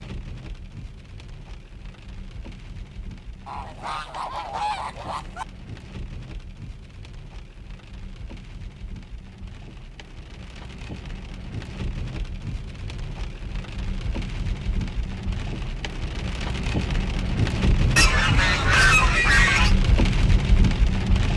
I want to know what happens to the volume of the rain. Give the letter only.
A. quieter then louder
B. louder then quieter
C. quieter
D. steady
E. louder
E.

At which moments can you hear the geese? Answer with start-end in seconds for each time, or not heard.
3.5-5.5, 17.9-19.8.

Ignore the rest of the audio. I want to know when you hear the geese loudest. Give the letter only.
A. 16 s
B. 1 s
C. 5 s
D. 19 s
D.